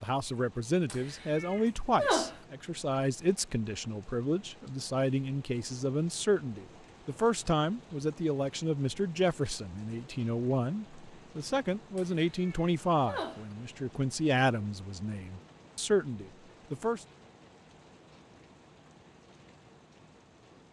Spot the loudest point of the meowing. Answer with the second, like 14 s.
2 s.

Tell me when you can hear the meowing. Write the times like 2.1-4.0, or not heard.
0.8-2.4, 11.9-13.6.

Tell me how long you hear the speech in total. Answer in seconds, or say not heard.
17 s.